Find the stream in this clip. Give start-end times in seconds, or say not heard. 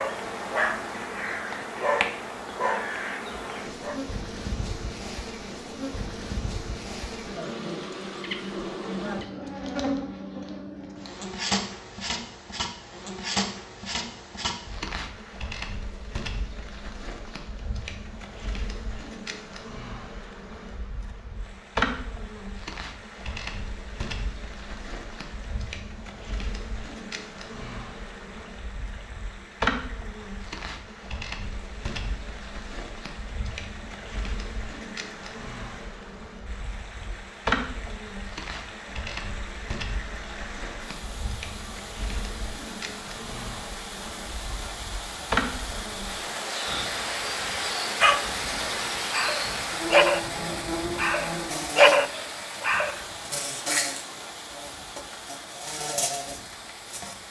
21.4-57.2.